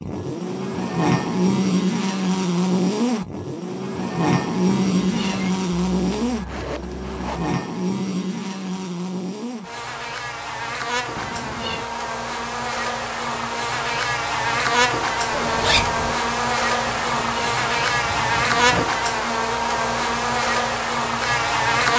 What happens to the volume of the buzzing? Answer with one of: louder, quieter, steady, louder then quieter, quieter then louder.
quieter then louder.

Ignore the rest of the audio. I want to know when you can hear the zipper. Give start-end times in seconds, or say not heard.
5.9-7.5, 15.3-16.1.